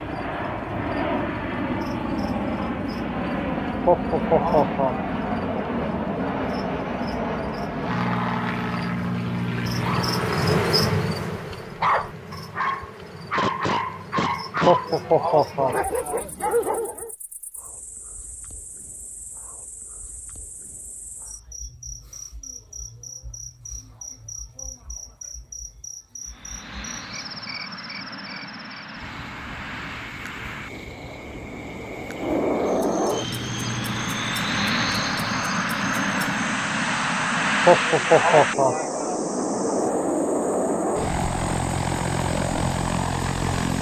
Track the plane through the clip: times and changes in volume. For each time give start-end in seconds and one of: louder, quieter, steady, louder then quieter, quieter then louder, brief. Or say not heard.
0.0-10.6 steady
26.2-43.7 louder.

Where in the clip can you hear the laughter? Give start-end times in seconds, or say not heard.
3.9-5.1, 14.7-16.1, 37.6-39.1.